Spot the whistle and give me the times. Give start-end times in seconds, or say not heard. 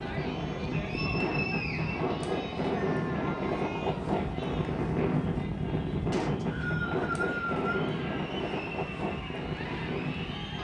0.8-2.1, 6.1-7.9.